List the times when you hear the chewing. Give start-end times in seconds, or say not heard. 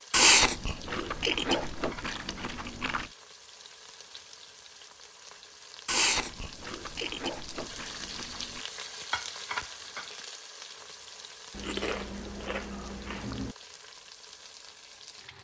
0.1-3.0, 5.8-8.6, 11.5-13.6.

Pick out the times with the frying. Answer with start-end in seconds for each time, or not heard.
0.0-15.3.